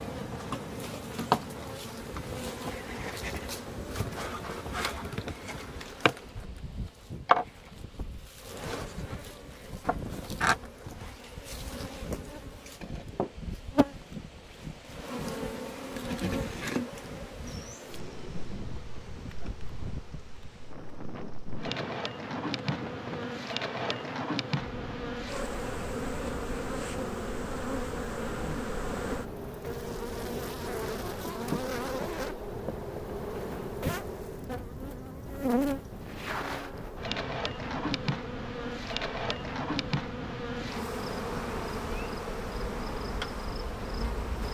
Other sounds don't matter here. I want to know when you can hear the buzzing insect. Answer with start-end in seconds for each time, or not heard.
0.0-44.4.